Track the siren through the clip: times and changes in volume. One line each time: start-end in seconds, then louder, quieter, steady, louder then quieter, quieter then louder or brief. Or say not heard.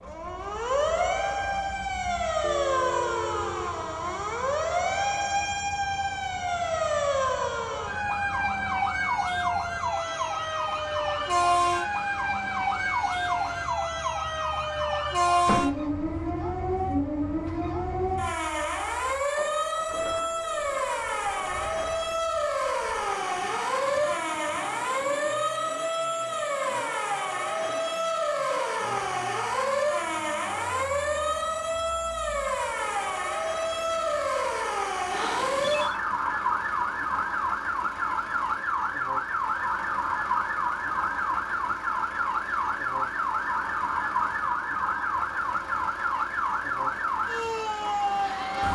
0.0-48.6 steady.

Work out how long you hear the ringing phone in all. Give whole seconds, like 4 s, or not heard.
2 s.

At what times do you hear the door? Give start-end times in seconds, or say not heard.
15.4-15.8.